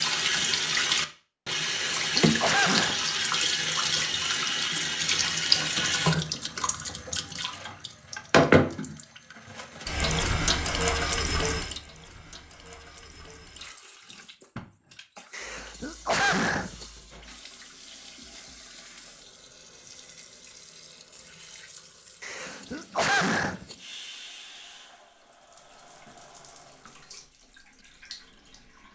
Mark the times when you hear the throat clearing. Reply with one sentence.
The throat clearing can be heard from 1.6 to 3.0 s, from 15.3 to 17.2 s and from 22.2 to 23.8 s.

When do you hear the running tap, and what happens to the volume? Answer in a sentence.
The running tap can be heard from 0.0 to 28.9 s, getting quieter.